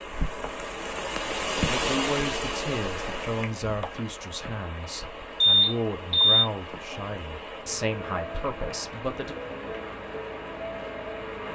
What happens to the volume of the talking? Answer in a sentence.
The loudness of the talking stays about the same.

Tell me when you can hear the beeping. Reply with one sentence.
You can hear the beeping from 5.4 to 6.3 s.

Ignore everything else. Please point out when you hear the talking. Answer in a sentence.
You can hear the talking from 1.6 to 9.3 s.